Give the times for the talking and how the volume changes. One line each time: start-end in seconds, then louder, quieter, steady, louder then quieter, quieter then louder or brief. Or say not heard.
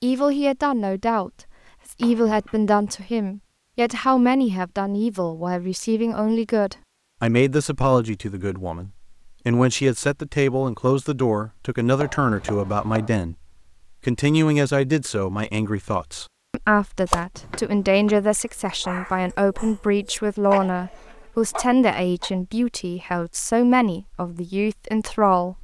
0.0-25.5 steady.